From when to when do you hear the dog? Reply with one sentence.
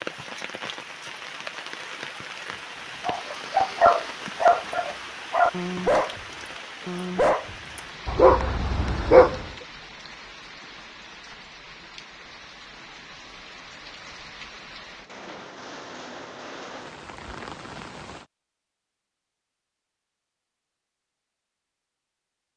You can hear the dog from 3.0 to 9.4 s.